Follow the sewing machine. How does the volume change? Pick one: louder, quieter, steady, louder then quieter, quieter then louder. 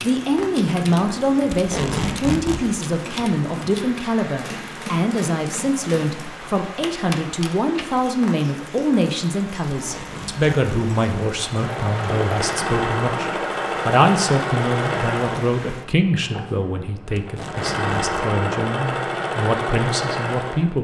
quieter then louder.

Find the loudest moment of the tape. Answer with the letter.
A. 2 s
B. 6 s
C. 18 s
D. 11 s
A.